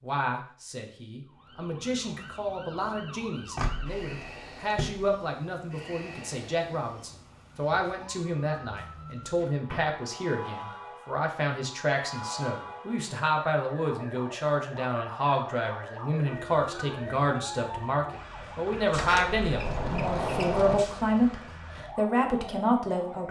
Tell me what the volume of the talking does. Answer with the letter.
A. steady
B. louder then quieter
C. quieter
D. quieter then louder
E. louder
E.